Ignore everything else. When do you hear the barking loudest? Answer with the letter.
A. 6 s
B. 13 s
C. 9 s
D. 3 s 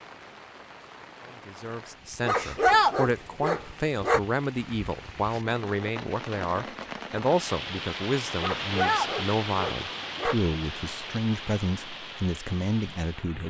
D.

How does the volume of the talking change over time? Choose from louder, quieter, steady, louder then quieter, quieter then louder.
steady.